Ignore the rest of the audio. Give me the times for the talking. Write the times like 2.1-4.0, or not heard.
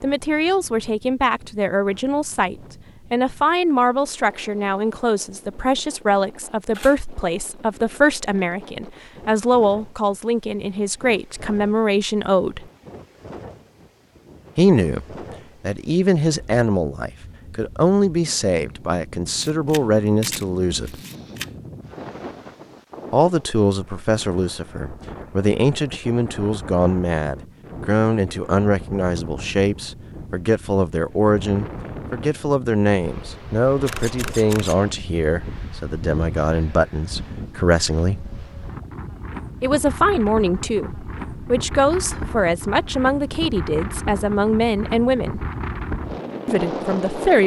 0.0-12.7, 14.6-21.0, 23.1-38.3, 39.6-45.5, 46.5-47.4.